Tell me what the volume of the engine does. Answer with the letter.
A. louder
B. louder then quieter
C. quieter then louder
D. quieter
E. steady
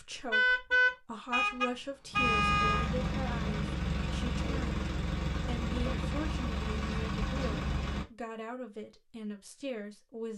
E.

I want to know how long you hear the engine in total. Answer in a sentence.
The engine can be heard for 6 seconds in total.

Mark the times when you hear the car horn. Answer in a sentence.
The car horn can be heard from 0.3 to 2.9 s.